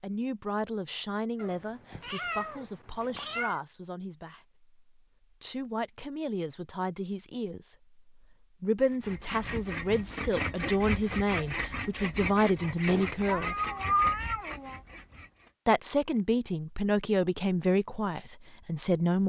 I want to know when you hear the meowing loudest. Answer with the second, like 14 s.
14 s.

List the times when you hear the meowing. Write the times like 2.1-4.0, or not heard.
1.4-3.6, 12.8-14.8.